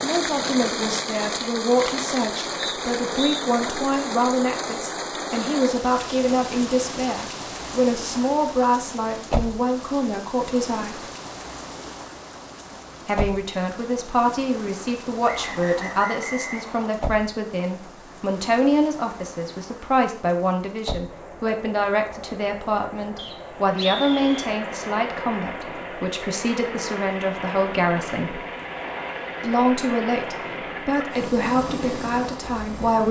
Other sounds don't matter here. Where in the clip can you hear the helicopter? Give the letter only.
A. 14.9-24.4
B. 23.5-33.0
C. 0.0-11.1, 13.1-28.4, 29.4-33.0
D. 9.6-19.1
B.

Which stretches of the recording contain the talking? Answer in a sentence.
The talking can be heard from 0.0 to 11.1 s, from 13.1 to 28.4 s and from 29.4 to 33.0 s.